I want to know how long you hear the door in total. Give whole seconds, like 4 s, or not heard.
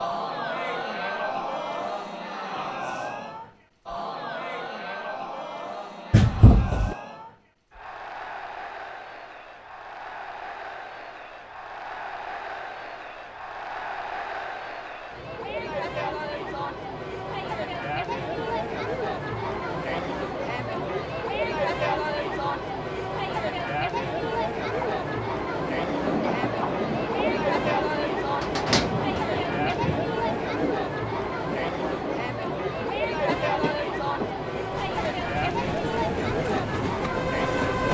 2 s.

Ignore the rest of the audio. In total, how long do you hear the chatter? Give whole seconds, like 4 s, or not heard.
38 s.